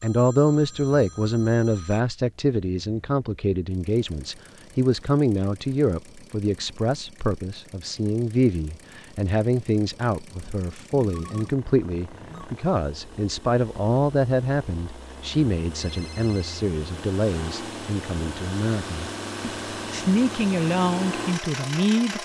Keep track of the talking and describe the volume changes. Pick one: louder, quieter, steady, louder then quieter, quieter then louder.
steady.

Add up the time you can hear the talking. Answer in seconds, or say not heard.
22 s.